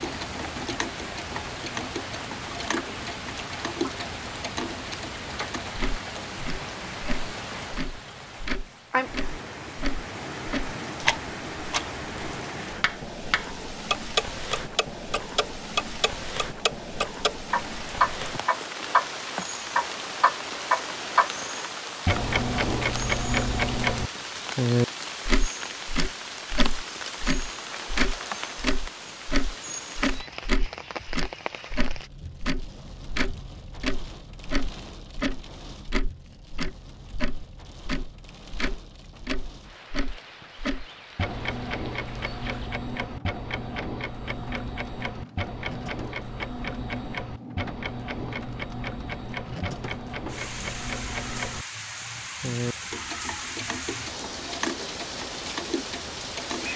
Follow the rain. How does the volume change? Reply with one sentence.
The volume of the rain goes down, then up.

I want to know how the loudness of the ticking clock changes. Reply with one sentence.
The loudness of the ticking clock goes up, then down.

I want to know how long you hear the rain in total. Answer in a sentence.
The rain can be heard for 57 seconds in total.